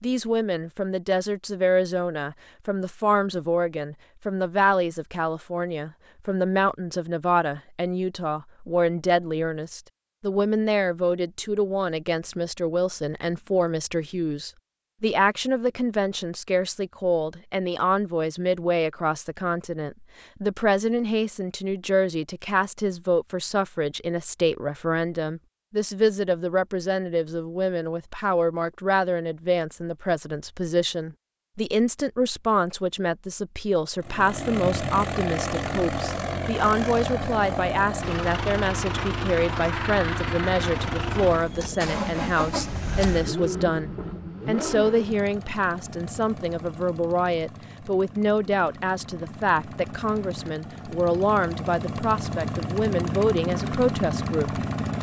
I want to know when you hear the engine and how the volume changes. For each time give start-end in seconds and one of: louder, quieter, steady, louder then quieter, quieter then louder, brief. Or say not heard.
34.0-54.9 quieter then louder.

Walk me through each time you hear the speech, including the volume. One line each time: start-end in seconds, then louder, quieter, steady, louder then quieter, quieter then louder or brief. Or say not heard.
0.0-54.6 steady.